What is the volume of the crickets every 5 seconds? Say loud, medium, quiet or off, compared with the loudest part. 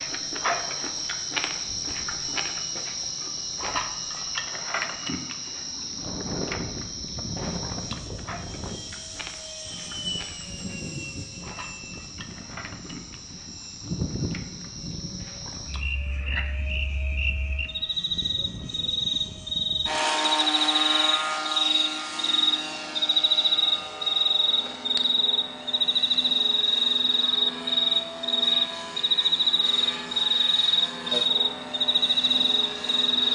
medium, quiet, quiet, medium, loud, loud, loud.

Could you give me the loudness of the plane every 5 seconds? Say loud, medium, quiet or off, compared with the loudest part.
quiet, medium, medium, medium, loud, medium, medium.